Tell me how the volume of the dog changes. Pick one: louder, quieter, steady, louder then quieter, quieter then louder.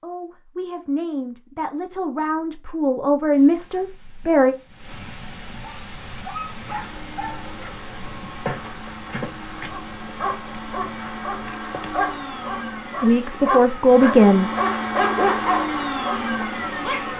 louder.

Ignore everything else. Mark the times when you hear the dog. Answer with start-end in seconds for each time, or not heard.
5.6-17.1.